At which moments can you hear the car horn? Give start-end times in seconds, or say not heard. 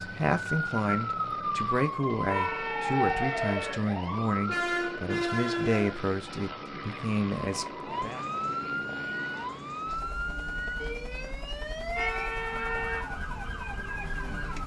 2.2-3.8, 11.9-13.1.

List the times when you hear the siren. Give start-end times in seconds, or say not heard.
0.0-14.6.